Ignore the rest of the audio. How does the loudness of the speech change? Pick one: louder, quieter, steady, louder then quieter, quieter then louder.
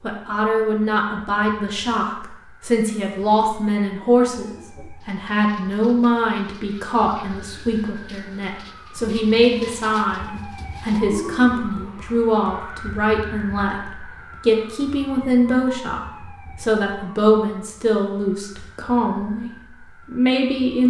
steady.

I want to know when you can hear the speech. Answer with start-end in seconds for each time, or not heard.
0.0-20.8.